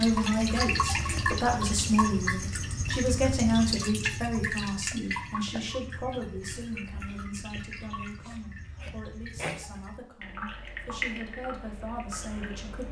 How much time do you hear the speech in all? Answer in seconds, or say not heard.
13 s.